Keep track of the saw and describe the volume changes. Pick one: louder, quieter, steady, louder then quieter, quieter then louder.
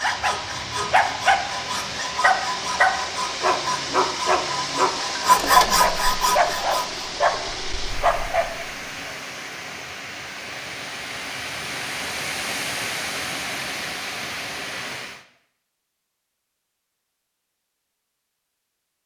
louder.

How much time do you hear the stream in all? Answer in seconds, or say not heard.
15 s.